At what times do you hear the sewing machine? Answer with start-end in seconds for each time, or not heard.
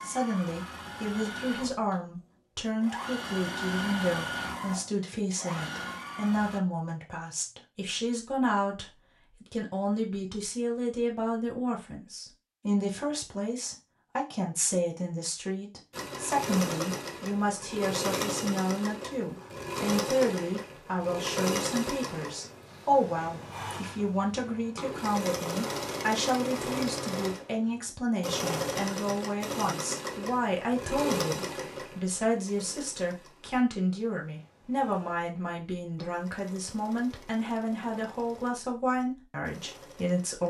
0.0-6.6, 15.9-40.4.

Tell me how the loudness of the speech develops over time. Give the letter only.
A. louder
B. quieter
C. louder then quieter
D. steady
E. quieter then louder
D.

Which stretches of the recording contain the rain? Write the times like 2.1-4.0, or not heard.
not heard.